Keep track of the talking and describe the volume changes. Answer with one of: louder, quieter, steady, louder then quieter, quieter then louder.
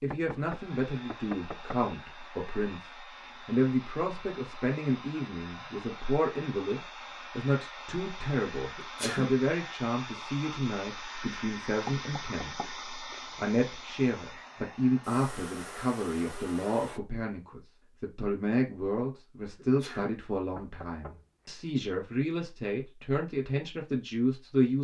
steady.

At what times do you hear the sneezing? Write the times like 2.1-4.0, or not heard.
8.8-9.3, 19.6-20.2.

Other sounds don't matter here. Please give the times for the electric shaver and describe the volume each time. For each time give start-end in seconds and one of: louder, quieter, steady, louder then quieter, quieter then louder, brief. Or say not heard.
not heard.